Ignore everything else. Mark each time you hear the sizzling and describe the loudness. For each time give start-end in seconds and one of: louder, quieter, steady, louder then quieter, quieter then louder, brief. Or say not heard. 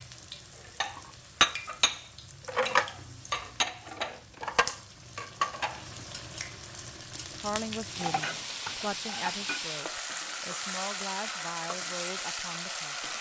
0.0-13.1 louder.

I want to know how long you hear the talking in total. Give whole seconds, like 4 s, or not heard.
6 s.